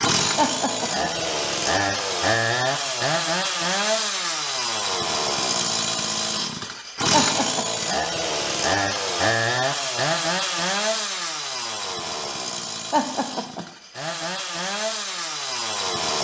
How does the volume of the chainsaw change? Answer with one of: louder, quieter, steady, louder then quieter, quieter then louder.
quieter.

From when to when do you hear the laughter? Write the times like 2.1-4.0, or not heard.
0.3-1.1, 7.1-7.7, 12.9-13.7.